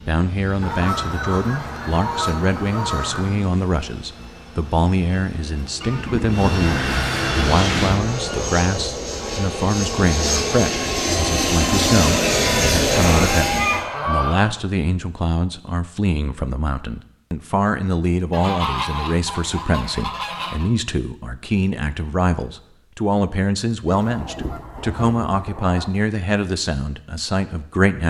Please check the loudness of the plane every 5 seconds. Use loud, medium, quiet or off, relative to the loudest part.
quiet, medium, loud, off, off, off.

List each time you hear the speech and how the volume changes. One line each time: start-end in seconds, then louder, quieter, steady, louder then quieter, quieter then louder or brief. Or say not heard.
0.1-28.0 steady.